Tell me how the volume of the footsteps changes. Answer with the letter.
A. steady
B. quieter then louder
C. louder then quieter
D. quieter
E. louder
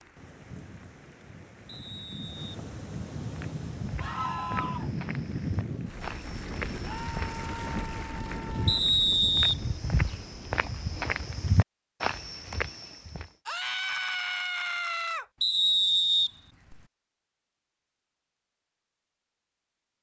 E.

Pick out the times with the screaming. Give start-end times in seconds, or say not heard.
4.0-4.9, 6.8-8.8, 13.4-15.2.